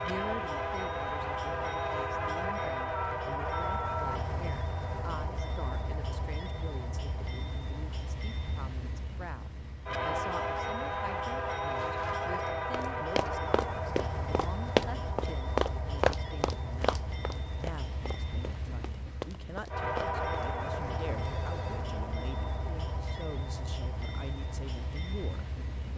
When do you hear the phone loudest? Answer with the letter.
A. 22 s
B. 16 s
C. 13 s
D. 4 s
D.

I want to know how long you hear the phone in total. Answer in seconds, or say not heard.
2 s.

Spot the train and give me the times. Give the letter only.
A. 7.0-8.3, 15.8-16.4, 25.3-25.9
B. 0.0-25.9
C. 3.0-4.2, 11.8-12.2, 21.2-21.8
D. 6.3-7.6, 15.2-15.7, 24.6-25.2
B.